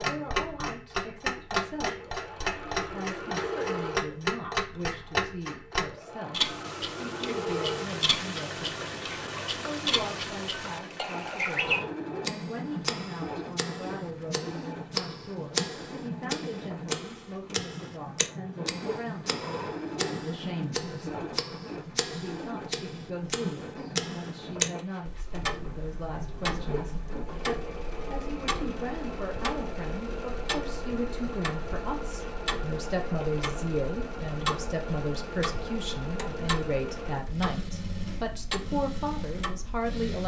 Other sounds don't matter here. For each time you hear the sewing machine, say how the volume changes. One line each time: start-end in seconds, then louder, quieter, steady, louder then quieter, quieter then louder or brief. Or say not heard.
0.0-40.2 steady.